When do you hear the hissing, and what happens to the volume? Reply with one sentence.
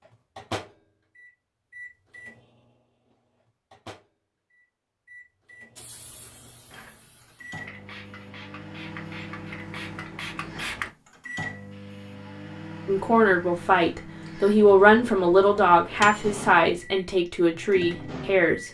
You can hear the hissing from 5.8 to 10.9 s, getting louder.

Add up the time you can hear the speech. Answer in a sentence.
The speech can be heard for 6 seconds in total.